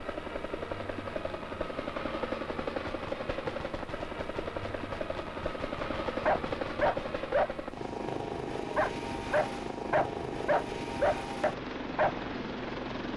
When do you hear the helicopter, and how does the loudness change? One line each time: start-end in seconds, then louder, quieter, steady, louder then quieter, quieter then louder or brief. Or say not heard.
0.0-13.1 steady.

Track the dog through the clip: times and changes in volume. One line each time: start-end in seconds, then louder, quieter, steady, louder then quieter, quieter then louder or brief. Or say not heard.
6.2-12.3 quieter then louder.